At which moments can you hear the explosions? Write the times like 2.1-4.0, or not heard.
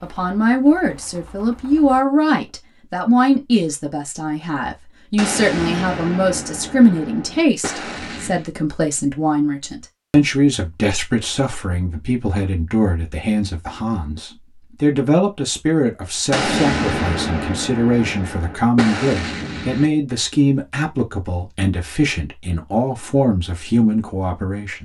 5.2-8.4, 16.3-19.9.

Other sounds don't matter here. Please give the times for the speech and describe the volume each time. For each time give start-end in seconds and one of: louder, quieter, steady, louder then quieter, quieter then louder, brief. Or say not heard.
0.0-24.8 steady.